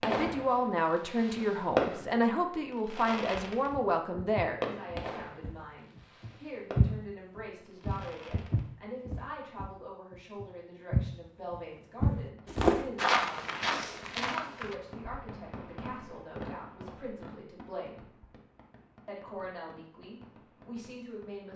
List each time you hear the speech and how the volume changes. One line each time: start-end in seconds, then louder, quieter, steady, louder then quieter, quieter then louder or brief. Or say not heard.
0.0-18.1 quieter
19.1-21.5 brief.